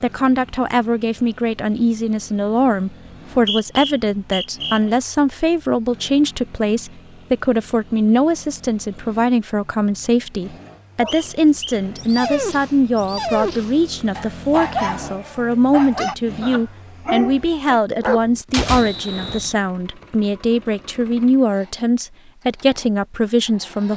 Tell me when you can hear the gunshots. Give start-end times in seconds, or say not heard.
18.5-19.4.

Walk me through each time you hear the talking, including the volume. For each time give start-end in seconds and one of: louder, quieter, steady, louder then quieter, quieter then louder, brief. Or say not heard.
0.0-23.9 steady.